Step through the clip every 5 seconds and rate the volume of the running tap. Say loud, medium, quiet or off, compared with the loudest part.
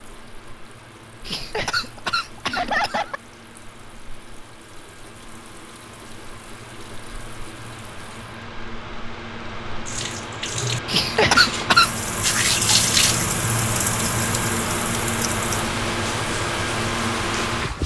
quiet, quiet, loud, medium.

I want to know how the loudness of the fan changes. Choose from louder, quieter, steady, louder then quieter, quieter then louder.
louder.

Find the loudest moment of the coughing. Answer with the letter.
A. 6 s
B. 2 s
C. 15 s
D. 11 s
D.